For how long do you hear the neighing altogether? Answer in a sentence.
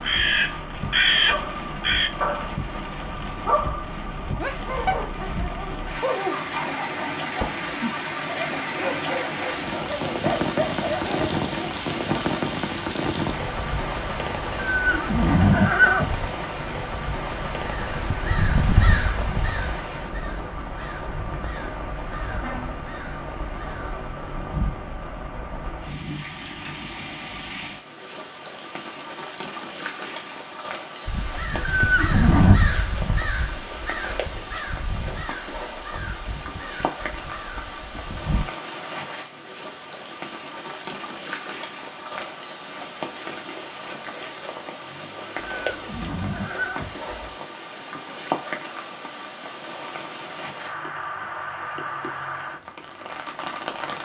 The neighing can be heard for 4 seconds in total.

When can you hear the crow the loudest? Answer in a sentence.
The volume of the crow peaks at 1 second.